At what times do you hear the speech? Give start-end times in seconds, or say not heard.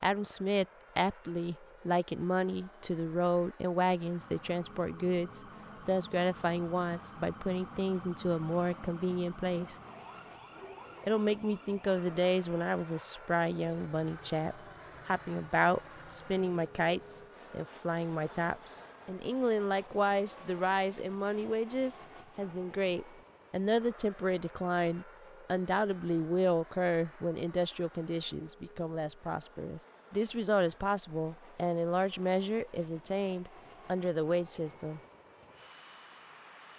0.0-9.8, 11.0-35.0.